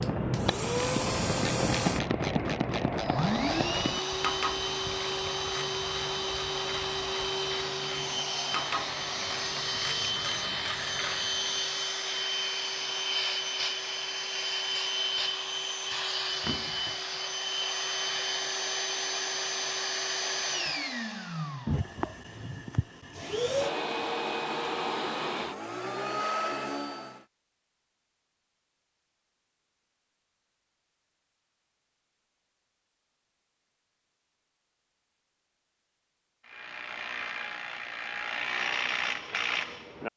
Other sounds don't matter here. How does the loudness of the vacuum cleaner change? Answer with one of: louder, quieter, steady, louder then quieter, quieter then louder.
steady.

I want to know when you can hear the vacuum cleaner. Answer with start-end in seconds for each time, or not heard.
0.0-27.2.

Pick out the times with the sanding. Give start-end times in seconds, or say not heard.
not heard.